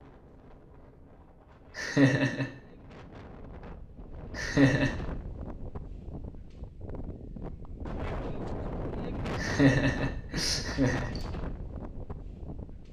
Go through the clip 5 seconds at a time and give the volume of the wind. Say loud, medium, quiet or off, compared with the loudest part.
medium, loud, loud.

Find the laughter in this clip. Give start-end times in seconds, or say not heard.
1.8-2.5, 4.3-5.0, 9.3-11.2.